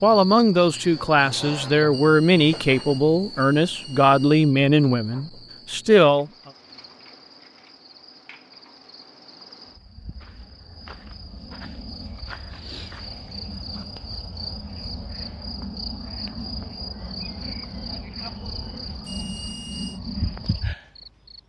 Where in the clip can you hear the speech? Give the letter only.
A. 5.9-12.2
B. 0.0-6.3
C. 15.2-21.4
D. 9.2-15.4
B.